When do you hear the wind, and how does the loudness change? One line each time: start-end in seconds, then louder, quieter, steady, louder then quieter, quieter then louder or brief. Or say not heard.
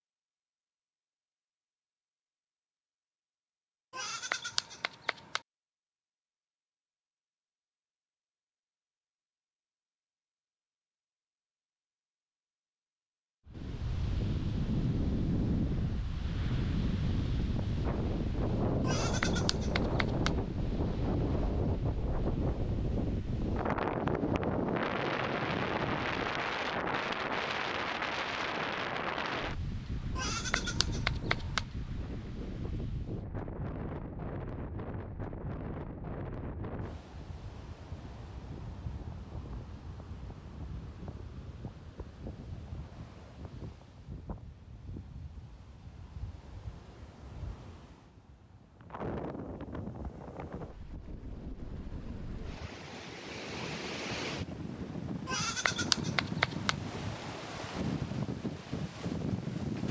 13.4-59.8 quieter then louder.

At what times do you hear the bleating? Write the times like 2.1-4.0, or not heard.
3.9-5.4, 18.8-20.4, 30.1-31.6, 55.2-56.8.